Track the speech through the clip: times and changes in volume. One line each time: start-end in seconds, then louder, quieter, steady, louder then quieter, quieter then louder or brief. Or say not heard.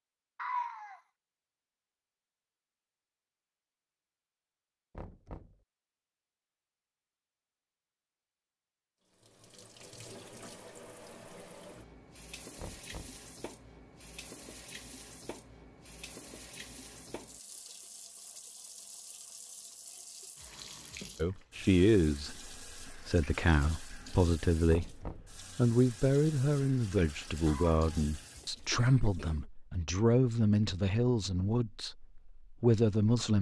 21.1-33.3 steady.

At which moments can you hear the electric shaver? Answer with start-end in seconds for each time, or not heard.
not heard.